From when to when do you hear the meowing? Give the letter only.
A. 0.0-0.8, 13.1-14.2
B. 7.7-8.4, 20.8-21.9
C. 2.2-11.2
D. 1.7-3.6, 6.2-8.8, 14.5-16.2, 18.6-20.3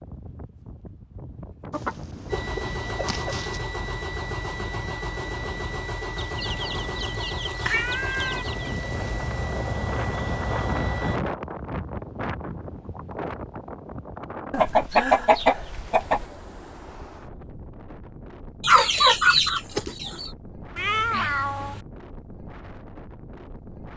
B.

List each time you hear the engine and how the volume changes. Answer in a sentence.
The engine can be heard from 2.2 to 11.2 s, at a steady volume.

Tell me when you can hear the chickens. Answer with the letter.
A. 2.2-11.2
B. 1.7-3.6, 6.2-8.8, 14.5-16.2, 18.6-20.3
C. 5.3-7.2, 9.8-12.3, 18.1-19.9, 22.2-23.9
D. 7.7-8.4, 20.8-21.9
B.